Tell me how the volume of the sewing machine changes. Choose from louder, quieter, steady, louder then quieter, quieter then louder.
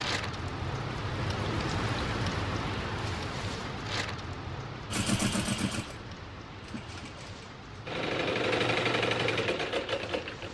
quieter then louder.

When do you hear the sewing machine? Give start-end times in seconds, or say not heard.
4.9-10.4.